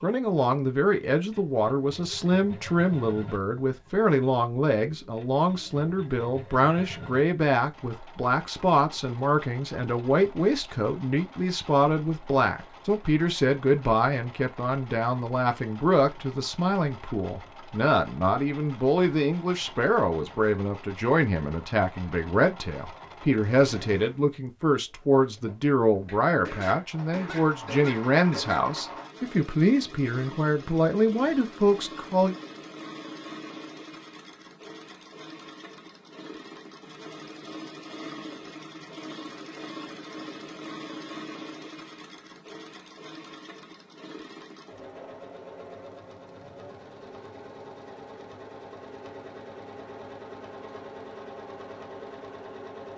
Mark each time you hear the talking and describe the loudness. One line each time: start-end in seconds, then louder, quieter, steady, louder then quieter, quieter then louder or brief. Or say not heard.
0.0-32.4 steady.